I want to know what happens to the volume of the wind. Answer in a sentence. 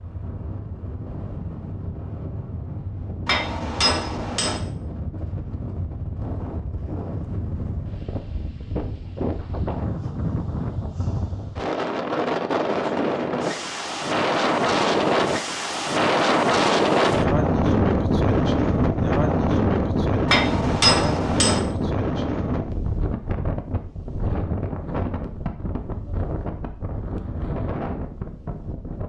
The loudness of the wind goes up, then down.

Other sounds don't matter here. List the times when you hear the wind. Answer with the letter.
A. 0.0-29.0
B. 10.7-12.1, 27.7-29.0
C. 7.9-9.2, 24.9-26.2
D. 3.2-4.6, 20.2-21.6
A.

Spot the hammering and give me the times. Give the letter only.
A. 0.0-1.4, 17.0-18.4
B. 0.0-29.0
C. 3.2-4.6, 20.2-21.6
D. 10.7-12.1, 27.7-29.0
C.